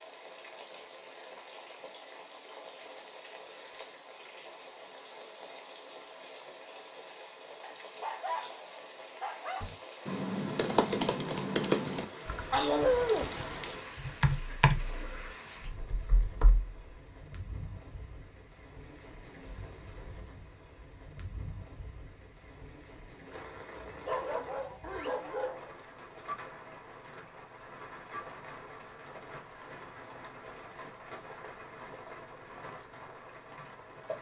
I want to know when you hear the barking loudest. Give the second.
13 s.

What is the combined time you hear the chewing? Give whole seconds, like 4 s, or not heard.
not heard.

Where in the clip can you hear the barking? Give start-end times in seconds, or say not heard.
7.6-9.7, 12.5-13.3, 24.1-25.7.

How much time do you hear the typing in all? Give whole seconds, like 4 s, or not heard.
7 s.